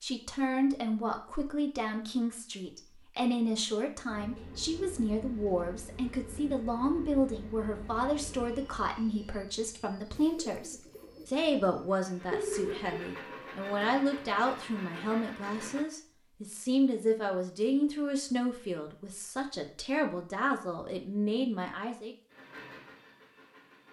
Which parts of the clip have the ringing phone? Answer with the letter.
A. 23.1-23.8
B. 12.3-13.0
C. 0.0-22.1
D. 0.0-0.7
B.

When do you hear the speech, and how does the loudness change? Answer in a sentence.
You can hear the speech from 0.0 to 22.1 s, at a steady volume.